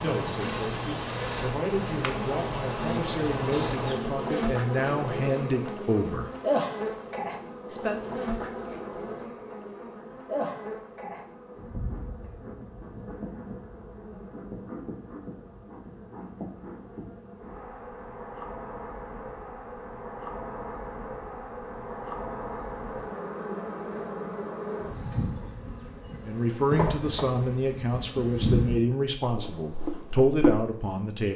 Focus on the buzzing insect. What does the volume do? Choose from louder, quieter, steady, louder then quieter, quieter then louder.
quieter then louder.